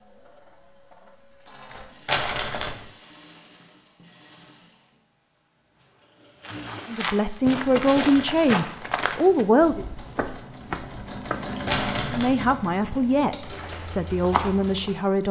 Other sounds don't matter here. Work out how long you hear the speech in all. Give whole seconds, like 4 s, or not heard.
6 s.